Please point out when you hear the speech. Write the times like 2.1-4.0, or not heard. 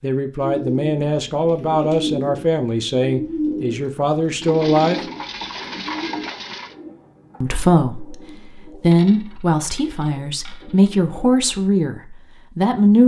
0.0-5.0, 7.4-13.0.